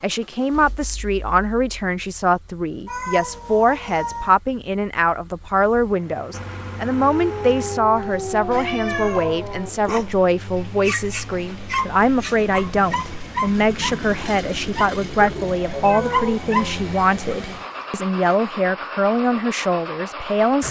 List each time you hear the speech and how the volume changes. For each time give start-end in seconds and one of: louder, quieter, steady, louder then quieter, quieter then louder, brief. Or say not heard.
0.0-20.6 steady.